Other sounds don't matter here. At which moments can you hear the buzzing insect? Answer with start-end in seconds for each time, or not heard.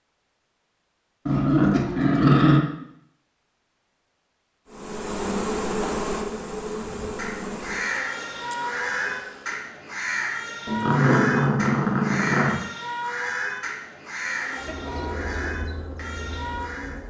4.7-9.7, 14.2-17.0.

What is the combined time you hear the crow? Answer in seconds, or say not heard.
10 s.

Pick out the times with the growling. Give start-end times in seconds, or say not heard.
1.2-2.6, 10.7-12.6.